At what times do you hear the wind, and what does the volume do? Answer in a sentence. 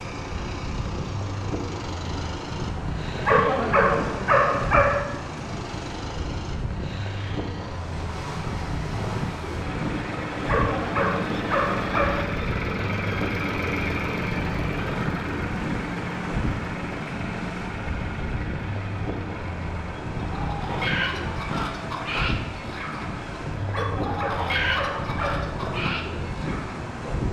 The wind can be heard from 0.0 to 27.2 s, at a steady volume.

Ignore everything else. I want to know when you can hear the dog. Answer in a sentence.
You can hear the dog from 3.2 to 5.0 s, from 10.4 to 12.2 s and from 23.7 to 25.5 s.